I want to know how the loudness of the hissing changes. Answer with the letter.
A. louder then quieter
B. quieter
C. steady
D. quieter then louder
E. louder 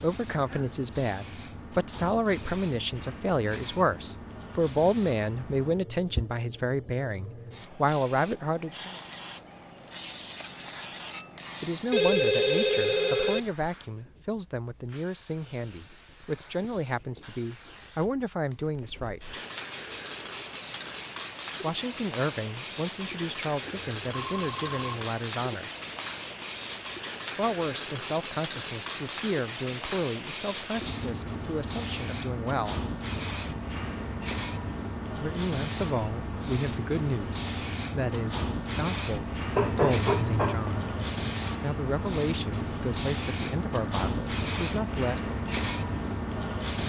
E.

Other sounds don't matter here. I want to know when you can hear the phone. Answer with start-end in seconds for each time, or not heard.
11.9-13.4, 23.6-25.1, 39.5-41.1.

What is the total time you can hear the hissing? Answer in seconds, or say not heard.
47 s.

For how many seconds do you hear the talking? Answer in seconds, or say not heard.
36 s.